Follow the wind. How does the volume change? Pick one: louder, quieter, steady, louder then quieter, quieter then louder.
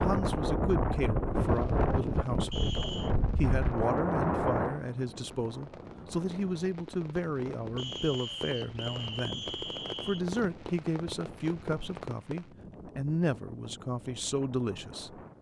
quieter.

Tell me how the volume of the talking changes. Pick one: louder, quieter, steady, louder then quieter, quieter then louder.
steady.